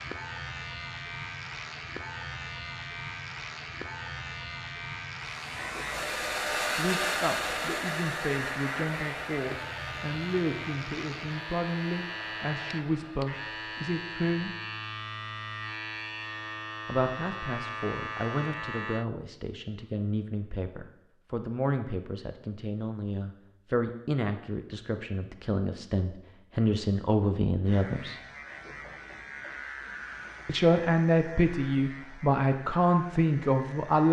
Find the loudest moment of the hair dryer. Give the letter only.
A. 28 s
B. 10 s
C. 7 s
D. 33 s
C.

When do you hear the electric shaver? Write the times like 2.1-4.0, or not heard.
0.0-19.1, 27.6-34.0.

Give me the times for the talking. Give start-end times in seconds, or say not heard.
6.8-14.5, 16.9-28.1, 30.4-34.0.